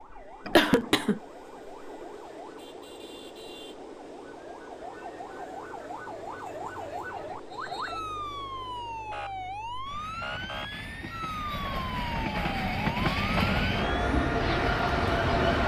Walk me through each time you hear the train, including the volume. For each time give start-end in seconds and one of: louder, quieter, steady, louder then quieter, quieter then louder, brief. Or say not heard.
0.0-15.6 louder.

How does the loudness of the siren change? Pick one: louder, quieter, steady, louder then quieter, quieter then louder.
louder.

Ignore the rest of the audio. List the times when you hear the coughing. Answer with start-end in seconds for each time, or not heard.
0.5-1.2.